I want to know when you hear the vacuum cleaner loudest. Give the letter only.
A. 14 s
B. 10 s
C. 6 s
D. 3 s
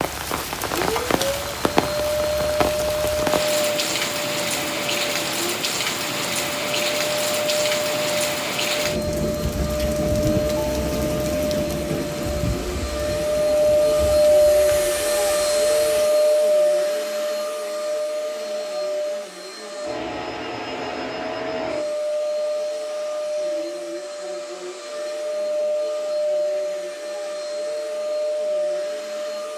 A.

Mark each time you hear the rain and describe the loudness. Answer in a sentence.
The rain can be heard from 0.0 to 16.1 s, getting quieter.